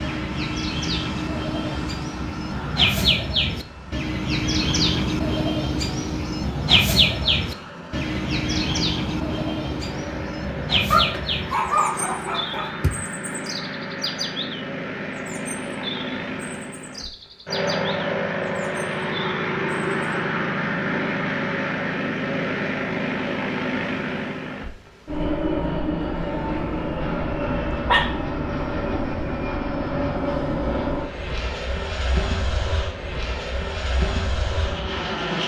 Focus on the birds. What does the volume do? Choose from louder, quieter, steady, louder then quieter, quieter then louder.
quieter.